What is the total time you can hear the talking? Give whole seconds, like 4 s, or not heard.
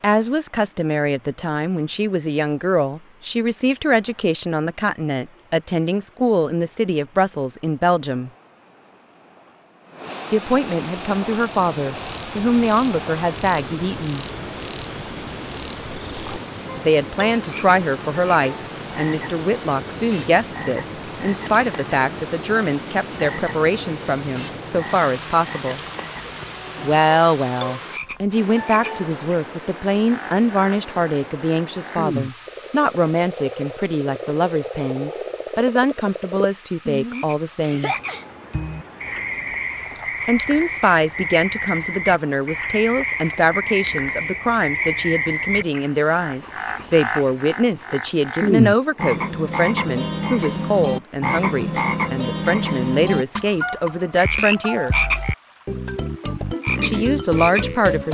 48 s.